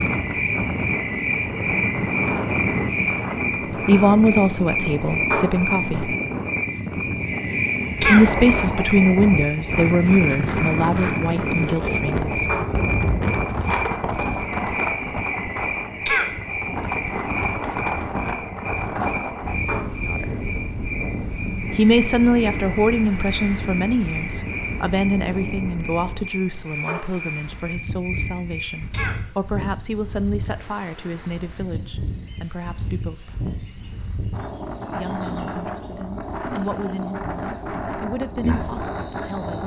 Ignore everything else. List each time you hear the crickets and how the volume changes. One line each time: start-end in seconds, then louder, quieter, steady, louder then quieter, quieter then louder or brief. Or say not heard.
0.0-39.6 quieter.